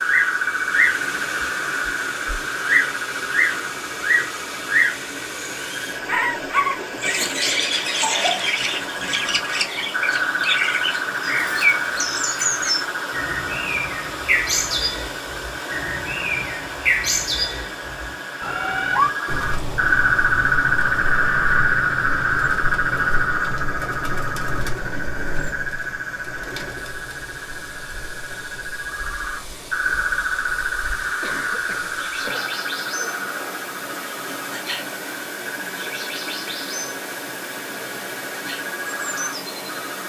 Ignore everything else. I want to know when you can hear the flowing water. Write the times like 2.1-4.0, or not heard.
0.0-40.0.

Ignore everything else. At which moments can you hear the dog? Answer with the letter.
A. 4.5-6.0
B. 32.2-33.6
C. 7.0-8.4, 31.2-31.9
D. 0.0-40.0
B.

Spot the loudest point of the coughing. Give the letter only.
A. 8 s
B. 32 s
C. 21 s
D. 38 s
A.